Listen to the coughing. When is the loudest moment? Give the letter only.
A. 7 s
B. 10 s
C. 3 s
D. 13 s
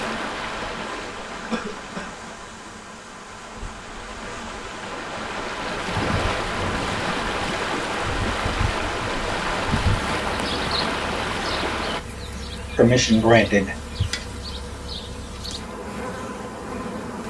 D.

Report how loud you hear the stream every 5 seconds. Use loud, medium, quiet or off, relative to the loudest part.
medium, loud, loud, off.